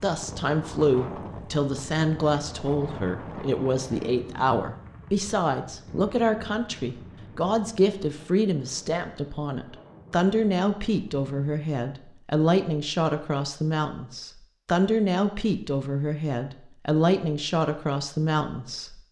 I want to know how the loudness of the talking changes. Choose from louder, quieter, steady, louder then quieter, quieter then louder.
steady.